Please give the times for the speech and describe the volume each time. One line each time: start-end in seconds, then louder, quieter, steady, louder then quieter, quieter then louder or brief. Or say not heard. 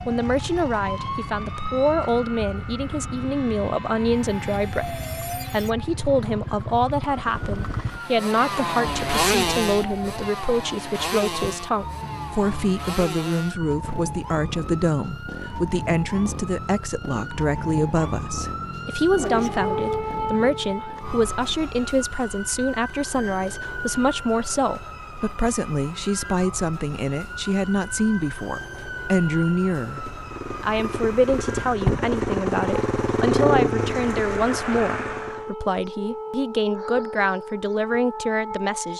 0.1-38.9 steady.